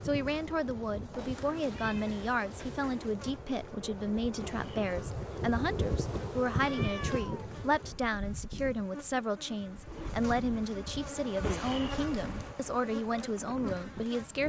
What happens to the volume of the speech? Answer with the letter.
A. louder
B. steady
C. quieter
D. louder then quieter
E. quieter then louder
B.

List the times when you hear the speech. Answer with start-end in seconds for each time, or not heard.
0.0-14.4.